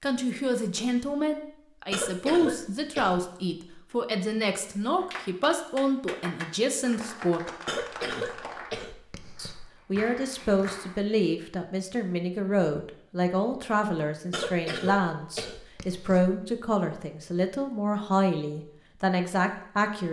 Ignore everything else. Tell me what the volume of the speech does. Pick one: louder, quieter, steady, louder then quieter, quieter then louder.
steady.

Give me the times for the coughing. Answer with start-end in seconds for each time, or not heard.
1.9-3.2, 7.7-9.7, 14.3-16.4.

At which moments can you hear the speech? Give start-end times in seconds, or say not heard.
0.0-7.5, 9.3-20.0.